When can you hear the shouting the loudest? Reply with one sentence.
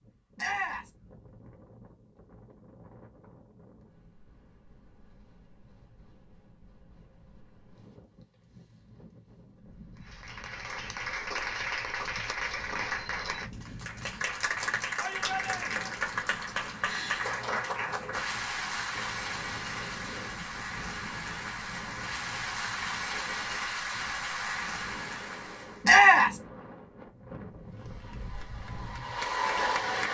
The loudest moment of the shouting is at 26 seconds.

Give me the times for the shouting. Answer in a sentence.
The shouting can be heard from 0.3 to 0.9 s, from 14.9 to 15.9 s and from 25.8 to 26.4 s.